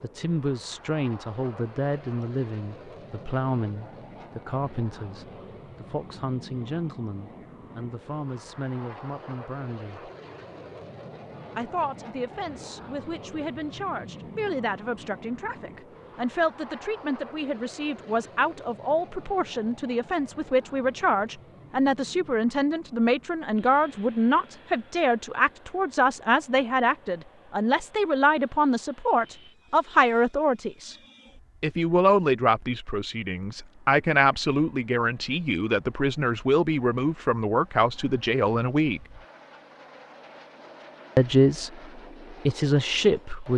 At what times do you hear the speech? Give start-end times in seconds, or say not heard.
0.0-10.1, 11.6-30.9, 31.6-39.0, 41.1-43.5.